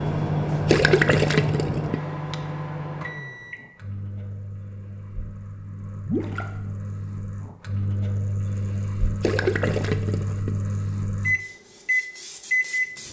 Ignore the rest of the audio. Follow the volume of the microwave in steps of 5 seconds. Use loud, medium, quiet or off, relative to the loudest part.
loud, medium, loud.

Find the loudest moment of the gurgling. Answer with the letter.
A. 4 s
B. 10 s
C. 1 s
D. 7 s
C.